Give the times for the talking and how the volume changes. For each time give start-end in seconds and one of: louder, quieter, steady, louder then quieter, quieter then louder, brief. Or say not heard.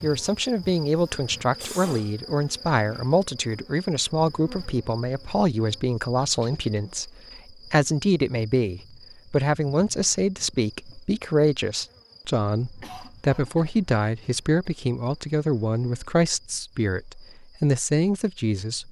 0.0-18.8 steady.